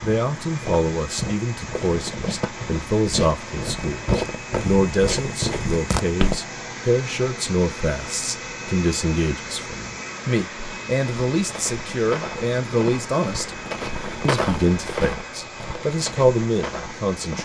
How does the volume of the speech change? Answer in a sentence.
The volume of the speech stays about the same.